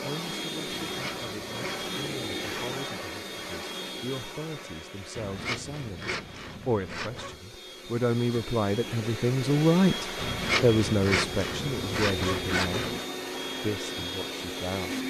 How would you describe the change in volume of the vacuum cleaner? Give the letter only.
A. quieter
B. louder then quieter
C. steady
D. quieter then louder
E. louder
D.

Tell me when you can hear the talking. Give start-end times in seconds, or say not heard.
0.0-6.0, 6.7-12.9, 13.6-15.0.